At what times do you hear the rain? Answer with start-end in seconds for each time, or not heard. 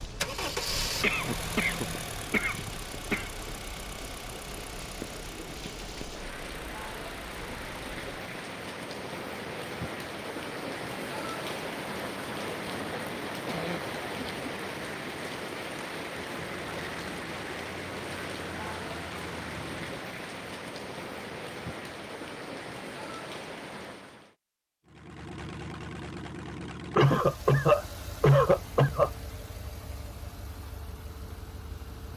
0.0-24.4.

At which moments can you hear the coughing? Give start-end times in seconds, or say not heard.
1.0-3.3, 13.4-14.4, 26.9-29.1.